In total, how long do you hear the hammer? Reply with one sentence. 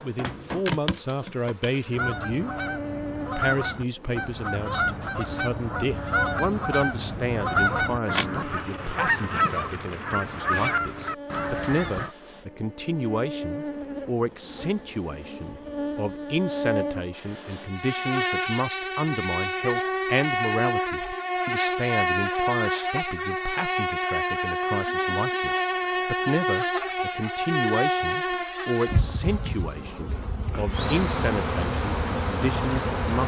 The hammer can't be heard in this clip.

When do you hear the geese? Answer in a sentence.
The geese can be heard from 1.9 to 12.2 s.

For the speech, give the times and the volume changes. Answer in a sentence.
You can hear the speech briefly from 0.0 to 2.5 s; and from 3.2 to 33.2 s, at a steady volume.